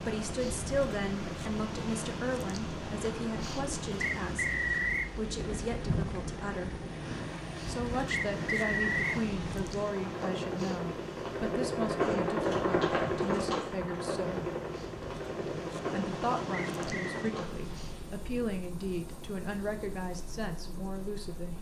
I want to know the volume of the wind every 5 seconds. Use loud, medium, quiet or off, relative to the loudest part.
loud, loud, medium, loud, off.